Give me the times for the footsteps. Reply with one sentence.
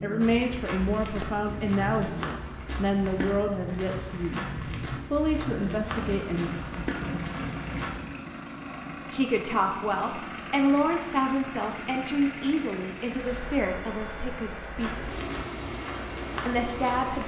You can hear the footsteps from 0.2 to 8.0 s and from 14.8 to 17.2 s.